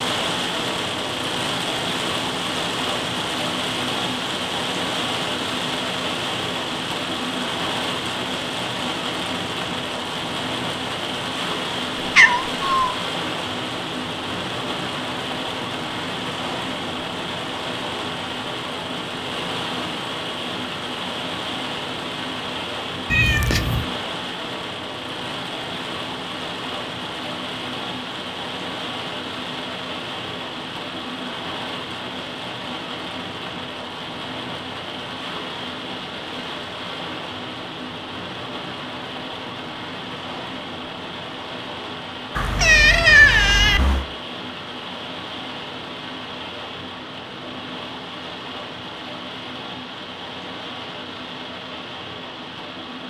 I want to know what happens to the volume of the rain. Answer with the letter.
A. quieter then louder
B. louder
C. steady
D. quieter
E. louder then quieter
D.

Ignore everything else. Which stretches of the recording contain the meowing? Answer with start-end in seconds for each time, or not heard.
12.2-12.9, 23.1-23.9, 42.4-44.0.